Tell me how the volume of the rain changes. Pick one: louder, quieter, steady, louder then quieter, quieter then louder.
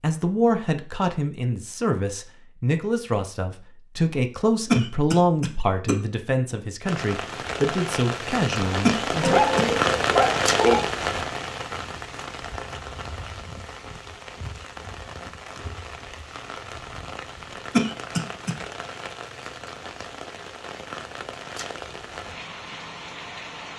quieter.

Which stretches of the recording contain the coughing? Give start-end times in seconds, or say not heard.
4.7-6.0, 8.8-9.7, 17.7-18.6.